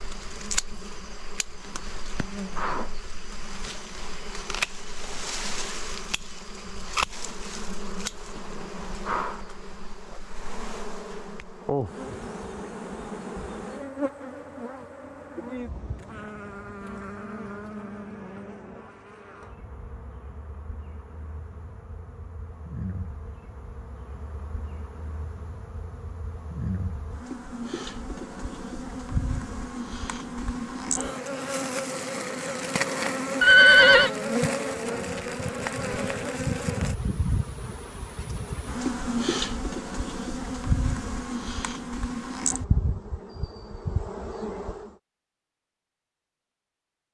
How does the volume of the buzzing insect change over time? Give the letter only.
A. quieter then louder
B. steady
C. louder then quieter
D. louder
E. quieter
A.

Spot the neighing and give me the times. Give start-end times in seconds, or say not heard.
33.4-34.1.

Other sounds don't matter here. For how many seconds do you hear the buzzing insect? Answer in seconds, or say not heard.
45 s.